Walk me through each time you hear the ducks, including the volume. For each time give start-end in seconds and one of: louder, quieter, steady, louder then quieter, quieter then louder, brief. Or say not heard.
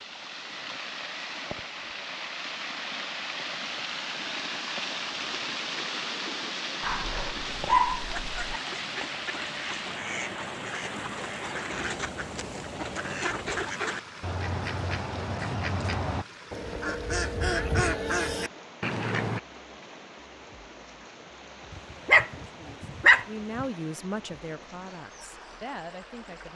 7.5-19.4 louder.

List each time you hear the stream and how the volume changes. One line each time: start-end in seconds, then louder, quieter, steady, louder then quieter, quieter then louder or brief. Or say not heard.
0.0-26.5 quieter.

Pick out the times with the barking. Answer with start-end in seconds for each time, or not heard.
6.8-8.6, 22.1-23.6.